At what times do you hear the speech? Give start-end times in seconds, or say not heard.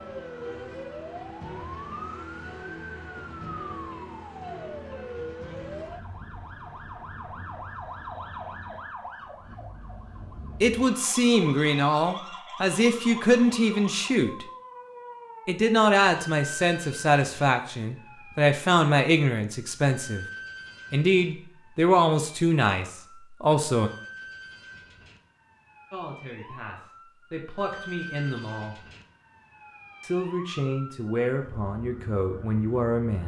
10.6-14.4, 15.4-20.2, 20.9-23.9, 25.9-28.8, 30.0-33.2.